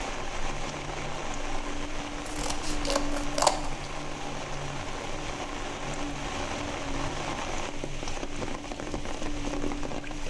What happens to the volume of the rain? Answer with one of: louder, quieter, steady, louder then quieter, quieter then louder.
steady.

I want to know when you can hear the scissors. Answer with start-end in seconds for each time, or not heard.
2.2-3.8.